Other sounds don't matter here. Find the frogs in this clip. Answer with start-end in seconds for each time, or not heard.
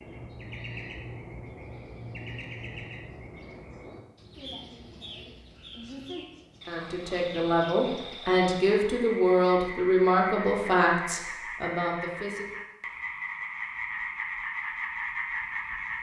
4.3-15.9.